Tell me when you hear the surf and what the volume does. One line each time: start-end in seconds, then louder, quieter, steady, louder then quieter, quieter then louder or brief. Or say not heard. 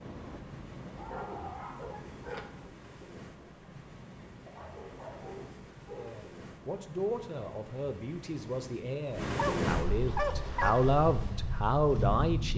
0.0-12.5 louder.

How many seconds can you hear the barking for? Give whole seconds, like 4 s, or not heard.
5 s.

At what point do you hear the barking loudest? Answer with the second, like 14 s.
10 s.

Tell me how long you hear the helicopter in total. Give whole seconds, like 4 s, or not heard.
3 s.